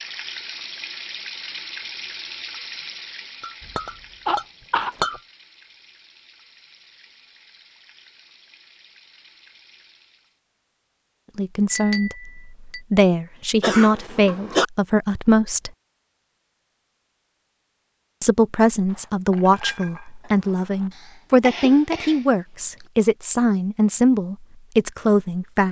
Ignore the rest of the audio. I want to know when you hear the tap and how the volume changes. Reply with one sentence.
The tap can be heard from 0.0 to 10.4 s, getting quieter.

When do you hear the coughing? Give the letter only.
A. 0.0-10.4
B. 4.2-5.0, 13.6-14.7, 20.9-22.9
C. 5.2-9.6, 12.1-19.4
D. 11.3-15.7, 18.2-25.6
B.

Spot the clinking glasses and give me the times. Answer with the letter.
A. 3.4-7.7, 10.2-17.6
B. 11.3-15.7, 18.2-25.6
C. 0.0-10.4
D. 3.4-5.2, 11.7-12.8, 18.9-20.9
D.